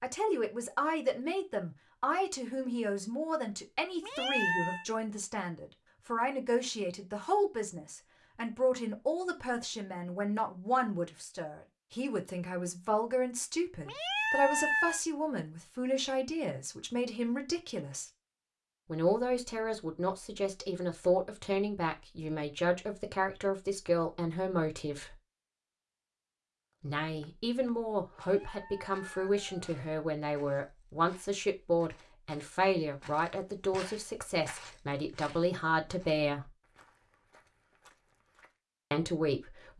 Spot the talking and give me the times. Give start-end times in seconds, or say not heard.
0.0-18.1, 18.9-25.1, 26.8-36.5, 38.9-39.7.